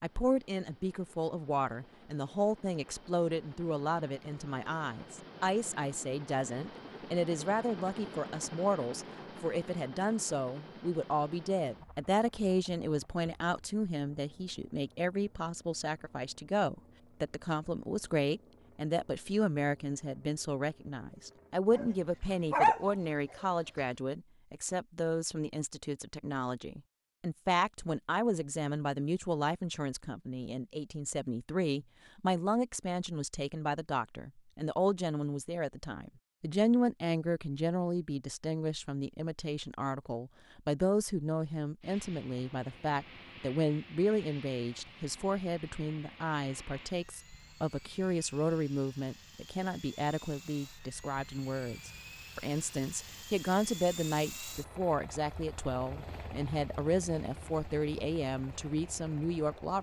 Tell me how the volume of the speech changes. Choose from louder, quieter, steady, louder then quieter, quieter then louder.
steady.